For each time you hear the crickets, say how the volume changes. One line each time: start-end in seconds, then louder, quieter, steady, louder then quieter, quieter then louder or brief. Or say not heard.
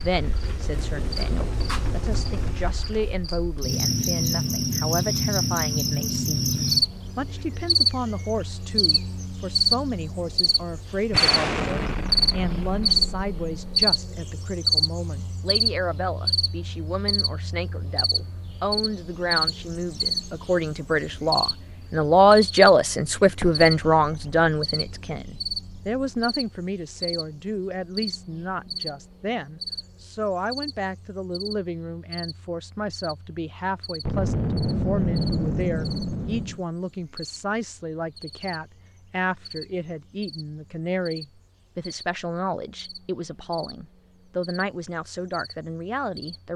0.0-46.5 quieter.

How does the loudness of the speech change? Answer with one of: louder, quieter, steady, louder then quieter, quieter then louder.
louder then quieter.